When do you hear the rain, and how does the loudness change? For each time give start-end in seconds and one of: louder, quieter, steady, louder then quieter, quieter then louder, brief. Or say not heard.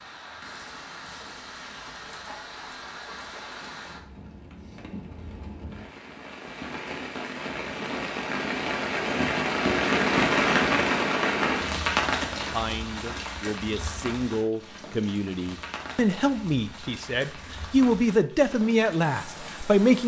0.0-20.0 louder then quieter.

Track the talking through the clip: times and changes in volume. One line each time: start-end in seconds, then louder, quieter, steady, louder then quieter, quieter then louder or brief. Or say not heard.
12.4-20.0 louder.